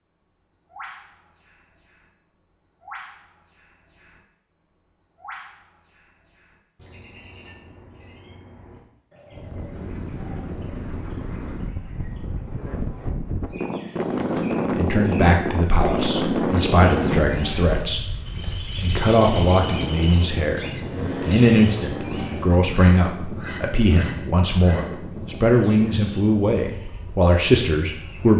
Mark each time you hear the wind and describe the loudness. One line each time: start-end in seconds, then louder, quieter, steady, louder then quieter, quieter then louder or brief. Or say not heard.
9.3-28.3 louder then quieter.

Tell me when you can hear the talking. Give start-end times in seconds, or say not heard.
14.8-20.6, 21.2-28.3.